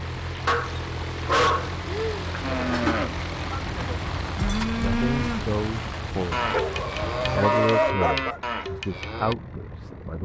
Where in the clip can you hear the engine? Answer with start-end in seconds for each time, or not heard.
0.0-10.2.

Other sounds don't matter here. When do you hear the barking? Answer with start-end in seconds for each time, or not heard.
0.5-3.0, 6.4-8.4.